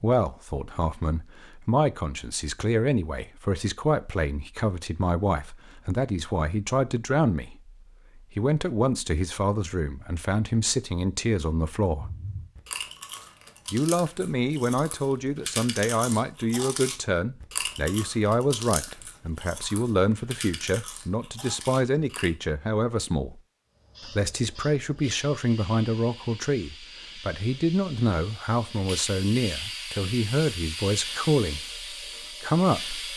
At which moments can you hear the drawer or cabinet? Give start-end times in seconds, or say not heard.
not heard.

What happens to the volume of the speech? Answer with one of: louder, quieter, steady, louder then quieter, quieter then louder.
steady.